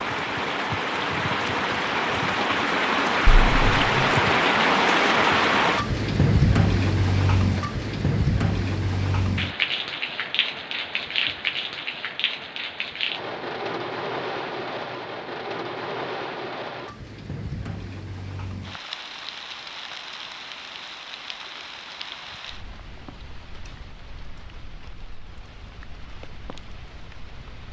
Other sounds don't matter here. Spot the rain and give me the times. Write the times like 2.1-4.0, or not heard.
0.0-27.6.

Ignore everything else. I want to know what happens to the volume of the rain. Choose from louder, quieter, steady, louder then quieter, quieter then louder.
quieter.